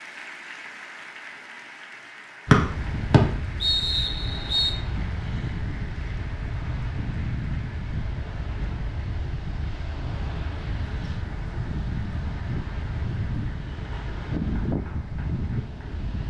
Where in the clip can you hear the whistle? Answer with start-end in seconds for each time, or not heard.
2.5-4.8.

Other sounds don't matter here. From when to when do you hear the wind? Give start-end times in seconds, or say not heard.
2.5-16.2.